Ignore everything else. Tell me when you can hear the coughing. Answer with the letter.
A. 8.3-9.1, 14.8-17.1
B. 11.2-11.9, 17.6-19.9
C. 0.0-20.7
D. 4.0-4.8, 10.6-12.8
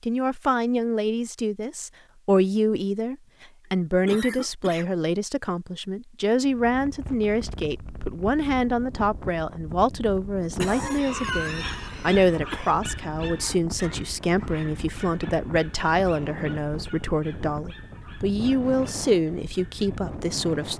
D.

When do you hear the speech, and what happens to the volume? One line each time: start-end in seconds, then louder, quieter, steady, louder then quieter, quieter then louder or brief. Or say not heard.
0.0-20.7 steady.